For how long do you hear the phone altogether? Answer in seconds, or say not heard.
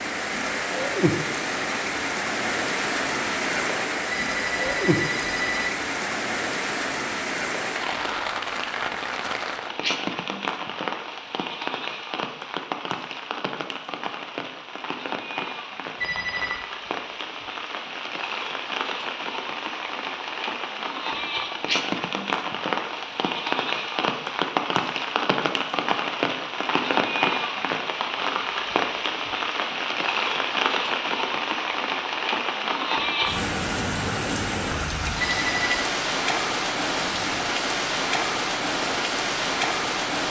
3 s.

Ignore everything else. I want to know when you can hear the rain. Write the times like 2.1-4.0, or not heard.
0.0-40.2.